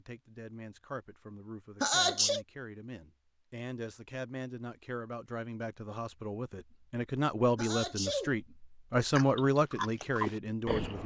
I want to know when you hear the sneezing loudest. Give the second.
2 s.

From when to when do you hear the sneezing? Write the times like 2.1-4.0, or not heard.
1.8-2.5, 7.5-8.3.